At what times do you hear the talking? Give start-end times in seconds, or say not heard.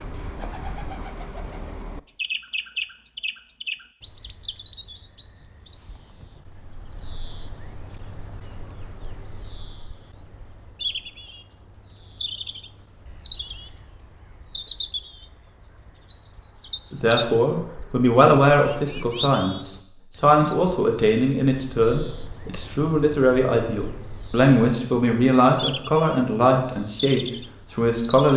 16.9-28.3.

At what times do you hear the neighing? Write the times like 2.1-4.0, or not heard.
not heard.